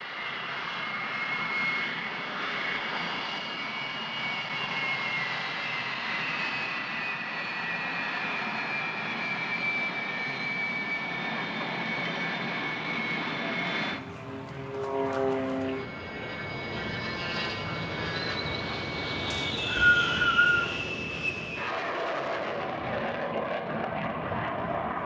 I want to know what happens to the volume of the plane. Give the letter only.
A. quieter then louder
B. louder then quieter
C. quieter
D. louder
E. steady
E.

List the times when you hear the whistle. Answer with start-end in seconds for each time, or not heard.
19.3-20.6.